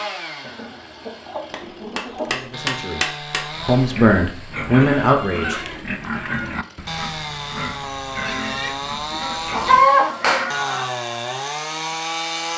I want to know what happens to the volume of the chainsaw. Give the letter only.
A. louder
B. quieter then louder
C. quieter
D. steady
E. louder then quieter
A.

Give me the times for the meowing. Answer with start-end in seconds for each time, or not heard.
not heard.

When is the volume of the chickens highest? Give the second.
10 s.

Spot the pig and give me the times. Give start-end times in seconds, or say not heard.
3.5-9.9.